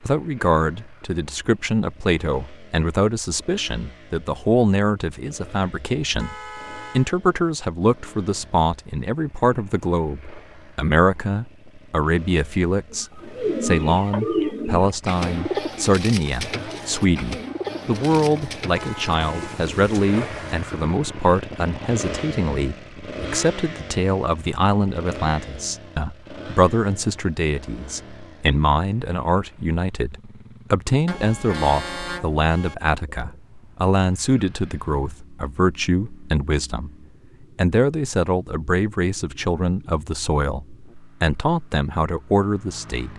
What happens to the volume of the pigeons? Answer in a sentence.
The loudness of the pigeons goes down.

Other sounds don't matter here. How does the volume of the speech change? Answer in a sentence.
The volume of the speech stays about the same.